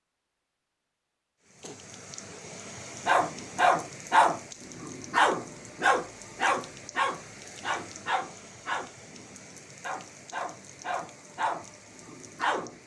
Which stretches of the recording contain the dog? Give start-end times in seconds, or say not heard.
3.0-12.8.